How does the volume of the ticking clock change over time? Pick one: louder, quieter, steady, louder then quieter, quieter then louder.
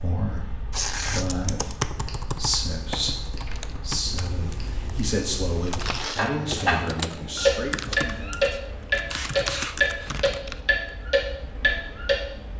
louder.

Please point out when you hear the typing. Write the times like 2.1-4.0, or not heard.
0.9-10.6.